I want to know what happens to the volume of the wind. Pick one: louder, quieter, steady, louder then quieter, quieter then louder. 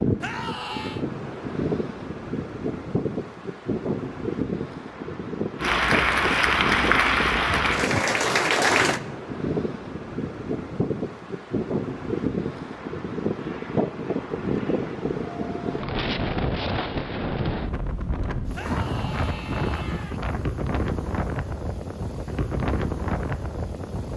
steady.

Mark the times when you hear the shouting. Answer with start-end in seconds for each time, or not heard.
0.2-1.1, 18.5-20.2.